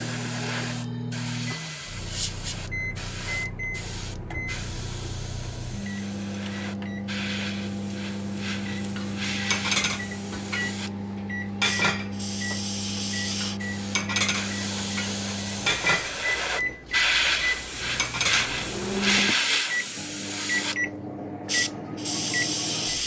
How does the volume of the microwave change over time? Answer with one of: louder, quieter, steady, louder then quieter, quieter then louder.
steady.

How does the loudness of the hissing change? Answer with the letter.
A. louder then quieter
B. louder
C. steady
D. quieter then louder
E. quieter
B.